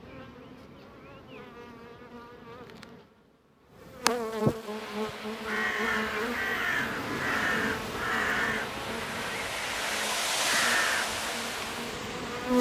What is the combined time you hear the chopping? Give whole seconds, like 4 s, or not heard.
not heard.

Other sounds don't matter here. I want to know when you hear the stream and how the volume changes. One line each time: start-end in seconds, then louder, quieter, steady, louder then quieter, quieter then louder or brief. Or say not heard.
4.5-12.5 louder.